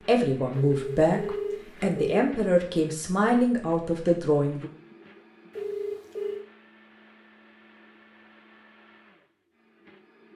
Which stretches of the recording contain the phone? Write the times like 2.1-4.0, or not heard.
0.6-2.2, 5.5-6.5.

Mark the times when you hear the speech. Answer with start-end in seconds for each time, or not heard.
0.1-4.7.